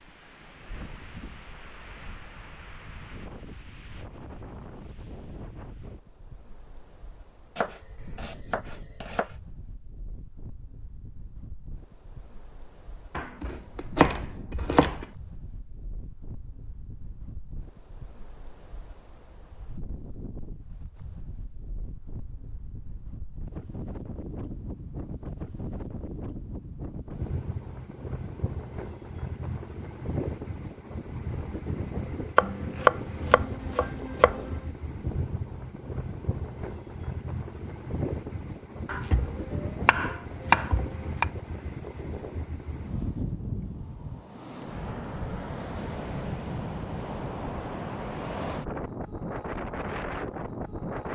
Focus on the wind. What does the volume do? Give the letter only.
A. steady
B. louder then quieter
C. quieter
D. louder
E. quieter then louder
D.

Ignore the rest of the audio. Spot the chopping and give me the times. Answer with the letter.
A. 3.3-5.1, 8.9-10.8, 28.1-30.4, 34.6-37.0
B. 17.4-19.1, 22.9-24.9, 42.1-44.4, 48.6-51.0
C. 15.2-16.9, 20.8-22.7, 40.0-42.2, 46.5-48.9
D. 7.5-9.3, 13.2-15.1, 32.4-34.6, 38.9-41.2
D.